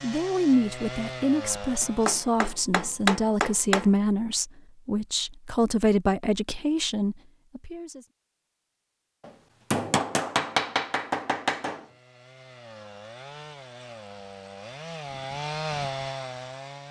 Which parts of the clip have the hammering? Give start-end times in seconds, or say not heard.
1.8-3.9, 9.2-11.8.